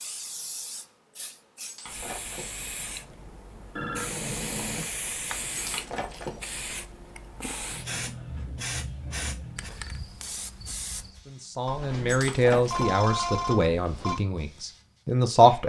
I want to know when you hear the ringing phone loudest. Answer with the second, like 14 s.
13 s.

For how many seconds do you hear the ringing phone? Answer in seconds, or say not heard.
4 s.